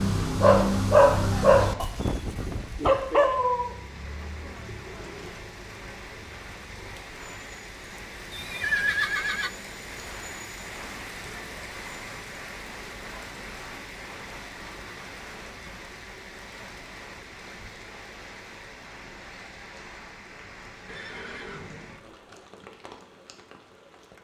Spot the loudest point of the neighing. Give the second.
9 s.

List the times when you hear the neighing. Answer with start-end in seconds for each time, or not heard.
1.9-2.7, 8.3-9.5, 20.9-22.5.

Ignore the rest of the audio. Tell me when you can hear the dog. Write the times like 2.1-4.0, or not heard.
0.0-3.7.